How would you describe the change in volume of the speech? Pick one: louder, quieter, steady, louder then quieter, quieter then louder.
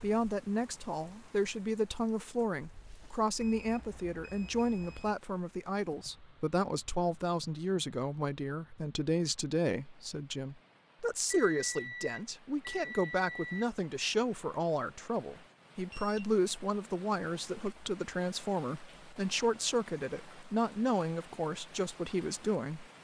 steady.